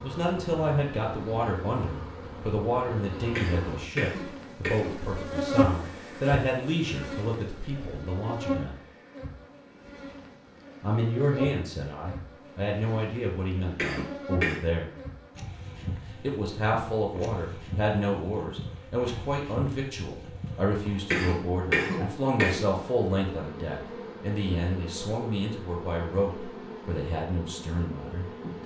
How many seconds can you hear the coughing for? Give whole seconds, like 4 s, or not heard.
4 s.